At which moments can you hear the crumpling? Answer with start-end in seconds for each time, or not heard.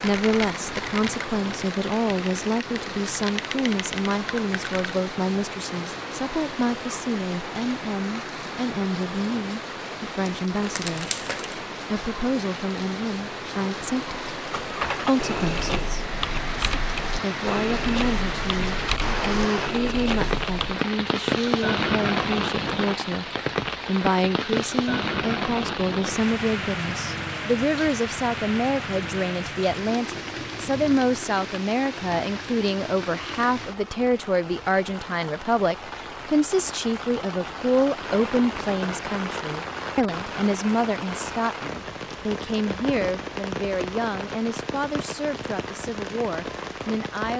10.2-11.6.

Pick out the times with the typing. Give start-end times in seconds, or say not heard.
0.0-4.9, 14.5-20.8.